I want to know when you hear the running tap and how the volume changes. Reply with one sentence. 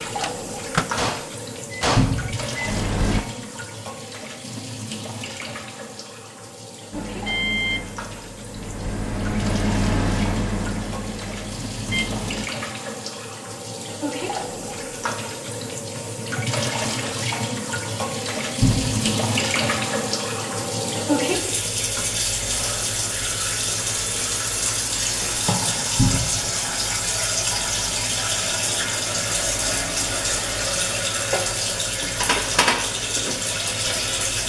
You can hear the running tap from 0.0 to 34.4 s, getting louder.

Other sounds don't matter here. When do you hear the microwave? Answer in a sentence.
The microwave can be heard from 0.0 to 3.2 s and from 6.9 to 12.5 s.